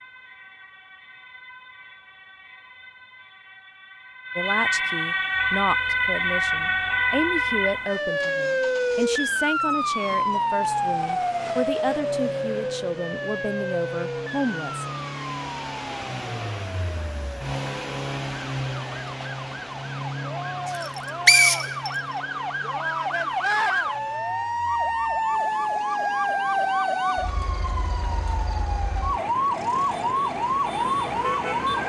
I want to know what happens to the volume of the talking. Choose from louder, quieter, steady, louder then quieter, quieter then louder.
steady.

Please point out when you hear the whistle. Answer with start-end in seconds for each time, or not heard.
20.8-21.9.